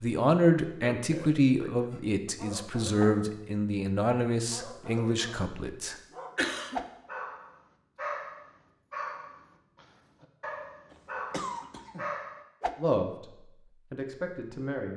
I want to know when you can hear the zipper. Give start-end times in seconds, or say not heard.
not heard.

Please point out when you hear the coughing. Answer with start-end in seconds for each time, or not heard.
0.8-1.9, 6.3-6.8, 10.9-12.1.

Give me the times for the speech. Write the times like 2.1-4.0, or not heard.
0.0-6.0, 12.8-14.9.